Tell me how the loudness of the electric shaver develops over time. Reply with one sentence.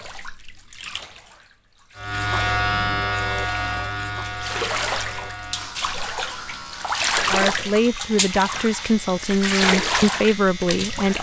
The loudness of the electric shaver goes down.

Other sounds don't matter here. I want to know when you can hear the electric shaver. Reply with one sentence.
The electric shaver can be heard from 1.9 to 11.1 s.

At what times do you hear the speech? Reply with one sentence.
The speech can be heard from 7.3 to 11.1 s.